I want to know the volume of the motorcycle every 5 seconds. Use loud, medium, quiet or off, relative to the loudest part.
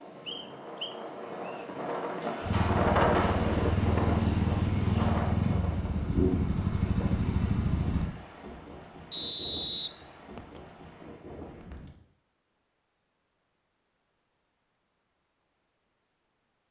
loud, loud, off, off.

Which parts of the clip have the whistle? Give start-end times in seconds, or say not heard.
0.2-1.6, 9.1-10.6.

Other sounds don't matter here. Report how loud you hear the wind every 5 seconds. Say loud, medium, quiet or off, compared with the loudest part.
loud, medium, quiet, off.